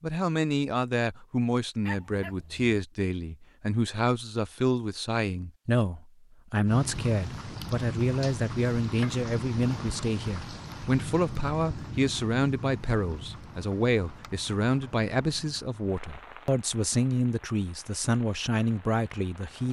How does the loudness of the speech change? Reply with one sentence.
The volume of the speech stays about the same.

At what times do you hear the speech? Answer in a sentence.
You can hear the speech from 0.0 to 19.6 s.